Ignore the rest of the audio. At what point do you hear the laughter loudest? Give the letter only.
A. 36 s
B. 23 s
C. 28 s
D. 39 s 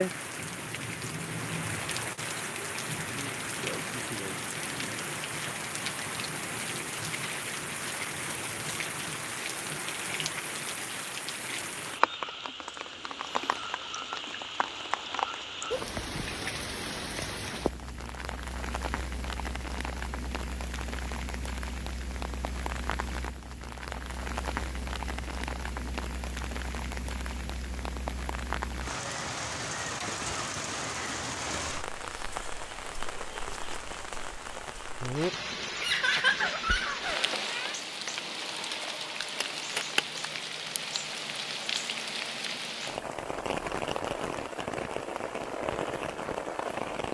A.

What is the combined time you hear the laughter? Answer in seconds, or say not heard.
2 s.